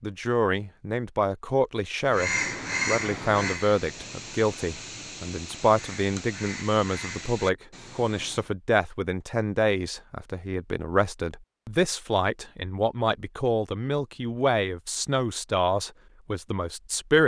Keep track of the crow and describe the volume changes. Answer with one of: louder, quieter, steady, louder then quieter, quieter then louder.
quieter.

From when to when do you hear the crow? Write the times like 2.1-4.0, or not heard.
2.0-8.5.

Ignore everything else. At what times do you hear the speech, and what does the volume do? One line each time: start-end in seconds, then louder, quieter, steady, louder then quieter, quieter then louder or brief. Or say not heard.
0.0-17.2 steady.